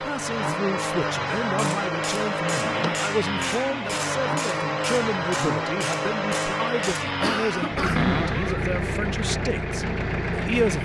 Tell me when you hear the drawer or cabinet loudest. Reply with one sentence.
The volume of the drawer or cabinet peaks at 8 seconds.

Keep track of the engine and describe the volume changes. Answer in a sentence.
The volume of the engine stays about the same.